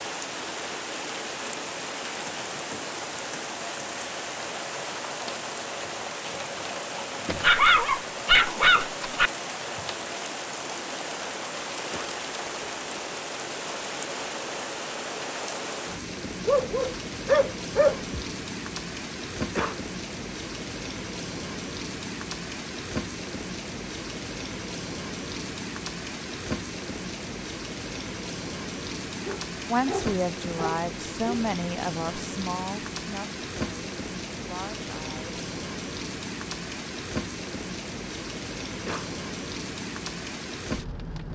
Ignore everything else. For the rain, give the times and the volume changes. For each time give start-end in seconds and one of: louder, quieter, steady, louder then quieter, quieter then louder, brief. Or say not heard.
0.0-41.2 steady.